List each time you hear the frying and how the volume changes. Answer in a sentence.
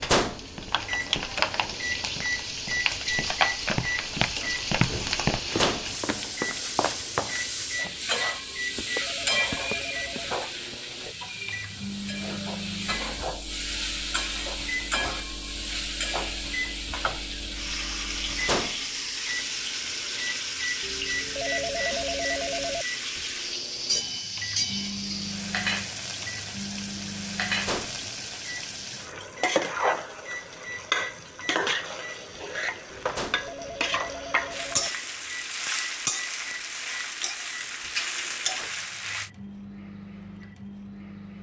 You can hear the frying from 0.1 to 39.3 s, at a steady volume.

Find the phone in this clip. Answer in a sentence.
The phone can be heard from 8.4 to 10.4 s, from 20.8 to 22.9 s and from 32.9 to 34.9 s.